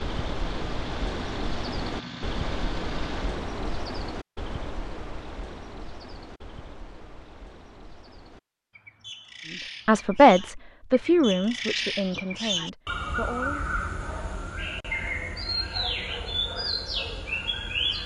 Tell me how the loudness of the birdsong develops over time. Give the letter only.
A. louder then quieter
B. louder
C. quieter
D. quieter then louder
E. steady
D.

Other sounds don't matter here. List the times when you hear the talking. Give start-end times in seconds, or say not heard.
9.8-13.7.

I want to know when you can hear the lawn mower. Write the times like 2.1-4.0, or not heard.
0.0-3.5.